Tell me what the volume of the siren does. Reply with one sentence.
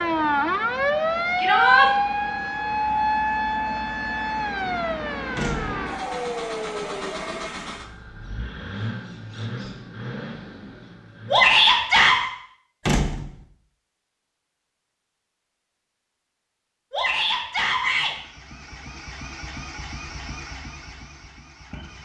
The volume of the siren goes down.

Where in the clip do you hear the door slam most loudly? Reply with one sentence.
The volume of the door slam peaks at 13 seconds.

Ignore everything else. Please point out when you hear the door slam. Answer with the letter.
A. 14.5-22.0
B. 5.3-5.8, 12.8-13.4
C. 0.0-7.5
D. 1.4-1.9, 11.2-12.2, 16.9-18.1
B.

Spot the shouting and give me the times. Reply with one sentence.
You can hear the shouting from 1.4 to 1.9 s, from 11.2 to 12.2 s and from 16.9 to 18.1 s.